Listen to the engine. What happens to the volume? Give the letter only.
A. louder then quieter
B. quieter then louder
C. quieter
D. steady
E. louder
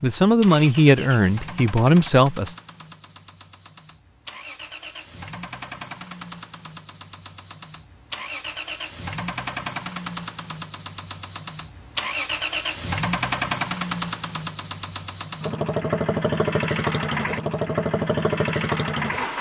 E.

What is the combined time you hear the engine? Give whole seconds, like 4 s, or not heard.
19 s.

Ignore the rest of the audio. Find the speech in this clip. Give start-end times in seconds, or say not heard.
0.0-2.5.